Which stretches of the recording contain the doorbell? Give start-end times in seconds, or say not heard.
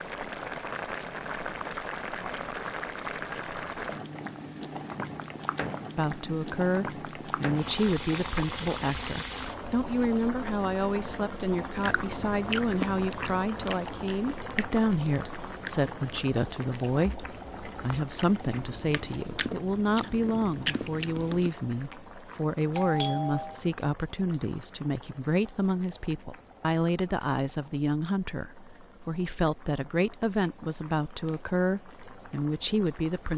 22.7-23.6.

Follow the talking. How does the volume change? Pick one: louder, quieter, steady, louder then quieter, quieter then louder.
steady.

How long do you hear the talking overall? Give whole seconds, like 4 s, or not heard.
27 s.